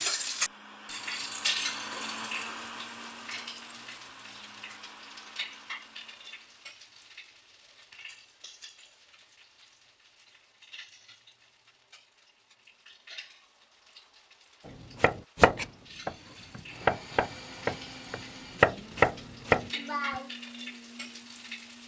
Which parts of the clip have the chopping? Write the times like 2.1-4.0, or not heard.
15.0-19.7.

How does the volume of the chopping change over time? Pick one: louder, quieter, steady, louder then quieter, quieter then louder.
quieter then louder.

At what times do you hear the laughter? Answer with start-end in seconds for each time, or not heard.
19.7-20.3.